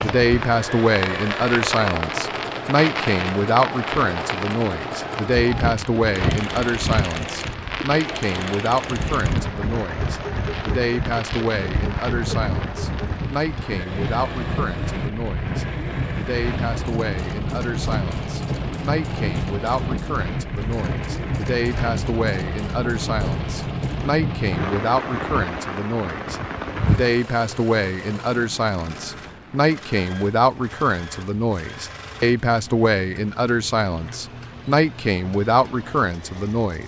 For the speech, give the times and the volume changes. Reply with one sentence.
You can hear the speech from 0.0 to 36.8 s, getting quieter then louder.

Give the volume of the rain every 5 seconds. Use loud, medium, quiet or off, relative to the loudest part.
loud, loud, loud, loud, loud, loud, quiet, quiet.